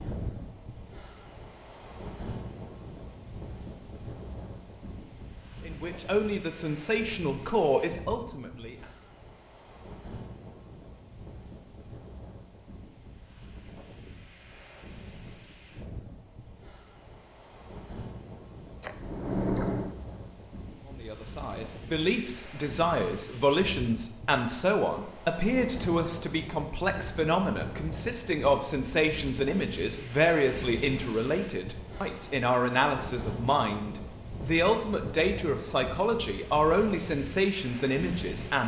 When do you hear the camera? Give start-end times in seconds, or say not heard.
18.8-19.9.